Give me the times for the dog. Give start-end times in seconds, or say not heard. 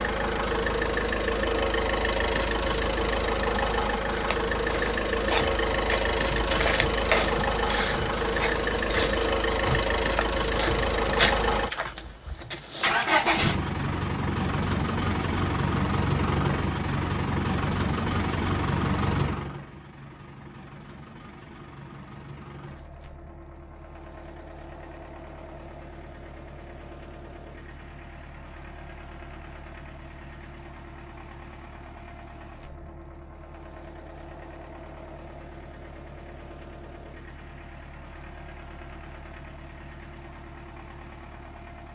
not heard.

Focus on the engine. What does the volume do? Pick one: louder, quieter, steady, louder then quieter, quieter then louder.
quieter.